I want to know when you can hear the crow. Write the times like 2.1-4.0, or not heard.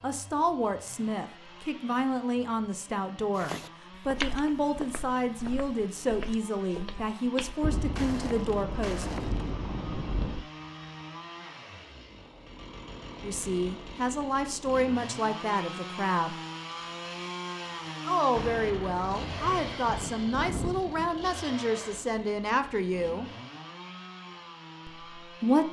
not heard.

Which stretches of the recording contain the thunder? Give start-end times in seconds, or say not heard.
7.6-10.4, 18.4-21.2.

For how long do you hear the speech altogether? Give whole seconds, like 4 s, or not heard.
18 s.